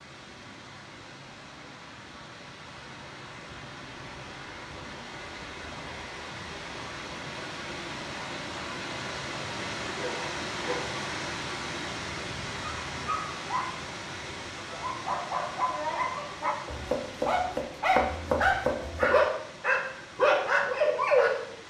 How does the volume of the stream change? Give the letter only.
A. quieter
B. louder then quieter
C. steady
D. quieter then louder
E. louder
B.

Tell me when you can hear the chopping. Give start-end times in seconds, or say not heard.
16.6-19.1.